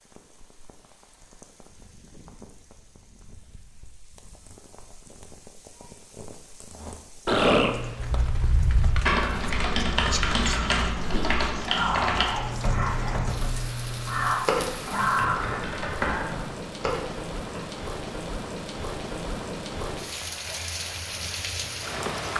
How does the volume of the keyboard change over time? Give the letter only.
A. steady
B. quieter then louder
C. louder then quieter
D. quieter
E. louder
D.